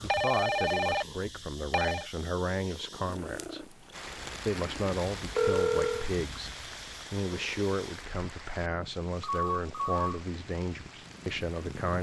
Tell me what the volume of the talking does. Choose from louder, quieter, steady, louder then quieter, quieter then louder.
steady.